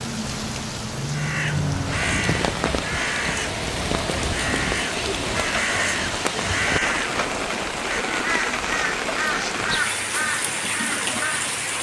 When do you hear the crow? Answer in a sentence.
You can hear the crow from 1.1 to 11.5 s.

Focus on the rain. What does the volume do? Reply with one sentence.
The volume of the rain stays about the same.